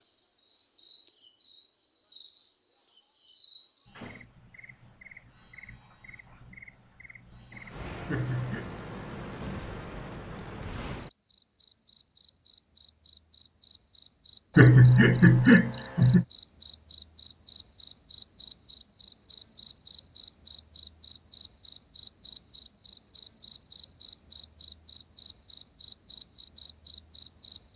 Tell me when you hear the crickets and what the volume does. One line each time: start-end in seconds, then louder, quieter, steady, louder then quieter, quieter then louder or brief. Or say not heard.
0.0-27.7 louder.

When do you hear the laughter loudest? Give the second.
15 s.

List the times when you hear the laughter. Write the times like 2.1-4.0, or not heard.
8.1-8.7, 14.6-16.2.